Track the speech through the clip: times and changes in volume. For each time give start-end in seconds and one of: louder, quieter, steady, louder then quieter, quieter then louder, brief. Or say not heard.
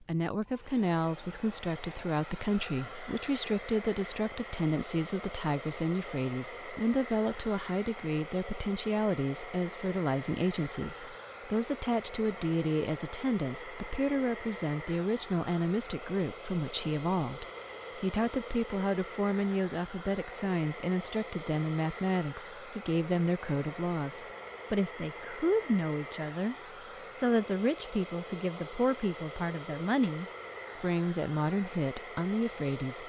0.0-33.0 steady.